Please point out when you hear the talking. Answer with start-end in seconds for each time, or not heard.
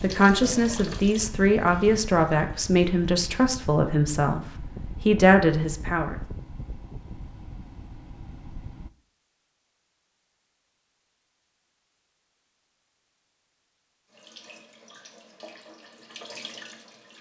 0.0-6.2.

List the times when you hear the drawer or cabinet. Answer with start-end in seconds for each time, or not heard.
not heard.